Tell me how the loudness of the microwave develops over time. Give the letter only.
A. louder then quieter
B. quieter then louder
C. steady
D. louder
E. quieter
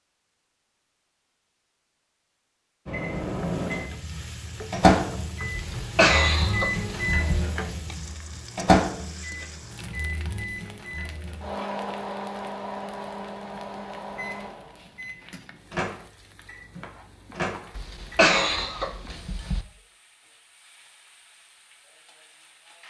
E.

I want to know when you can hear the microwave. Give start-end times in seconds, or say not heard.
2.9-18.6.